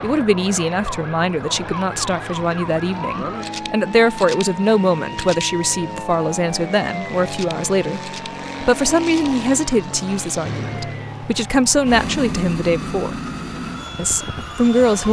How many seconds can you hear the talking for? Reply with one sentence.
You can hear the talking for 14 seconds altogether.